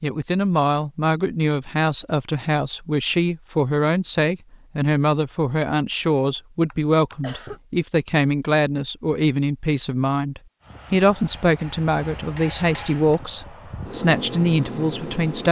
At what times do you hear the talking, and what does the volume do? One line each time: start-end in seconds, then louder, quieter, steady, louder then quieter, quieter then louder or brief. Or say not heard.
0.0-15.4 steady.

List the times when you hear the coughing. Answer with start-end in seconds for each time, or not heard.
6.7-7.6.